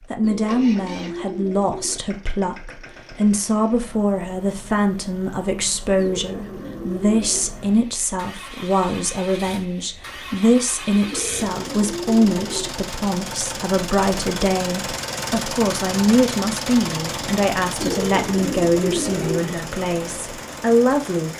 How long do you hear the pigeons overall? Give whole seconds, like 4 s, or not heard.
7 s.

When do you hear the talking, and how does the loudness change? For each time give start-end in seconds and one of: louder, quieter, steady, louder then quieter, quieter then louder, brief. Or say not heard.
0.1-21.3 steady.